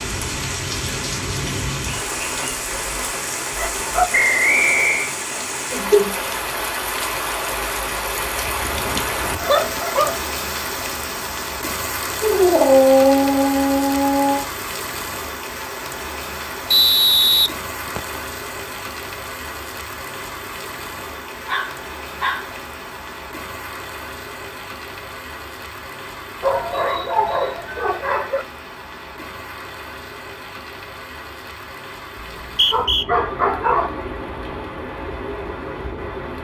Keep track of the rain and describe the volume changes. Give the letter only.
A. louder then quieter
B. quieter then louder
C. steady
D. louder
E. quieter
E.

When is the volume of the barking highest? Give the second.
13 s.